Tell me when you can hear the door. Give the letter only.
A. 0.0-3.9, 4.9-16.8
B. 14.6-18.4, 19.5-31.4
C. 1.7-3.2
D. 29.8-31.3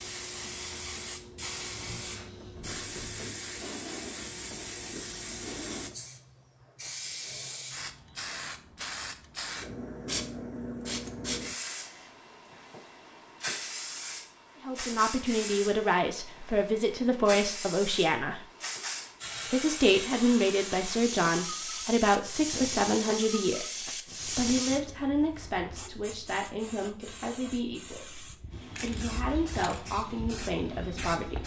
C.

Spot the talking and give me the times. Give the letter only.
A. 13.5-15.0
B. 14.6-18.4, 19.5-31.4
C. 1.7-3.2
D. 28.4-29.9
B.